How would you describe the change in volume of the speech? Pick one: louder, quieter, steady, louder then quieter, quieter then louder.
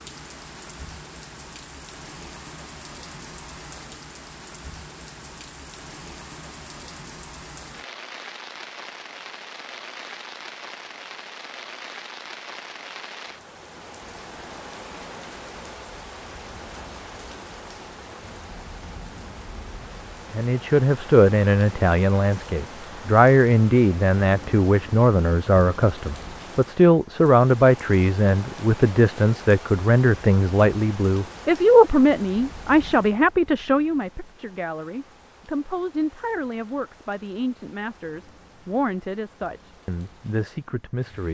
quieter.